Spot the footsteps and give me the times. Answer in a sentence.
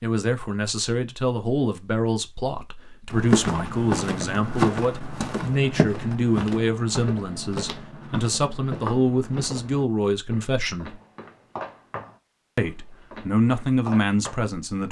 You can hear the footsteps from 3.1 to 14.6 s.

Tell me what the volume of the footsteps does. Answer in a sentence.
The loudness of the footsteps goes down.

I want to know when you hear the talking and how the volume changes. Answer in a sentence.
You can hear the talking from 0.0 to 10.9 s, at a steady volume; and briefly from 12.6 to 14.8 s.